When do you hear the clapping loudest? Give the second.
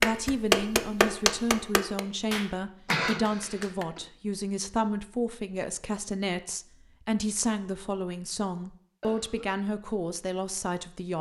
1 s.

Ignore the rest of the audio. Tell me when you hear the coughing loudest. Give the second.
3 s.